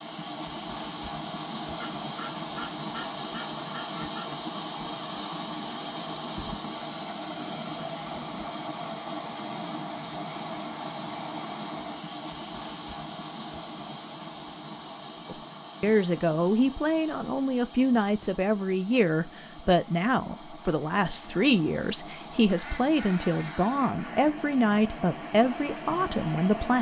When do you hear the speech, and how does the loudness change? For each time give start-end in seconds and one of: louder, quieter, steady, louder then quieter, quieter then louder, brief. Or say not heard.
15.2-26.7 steady.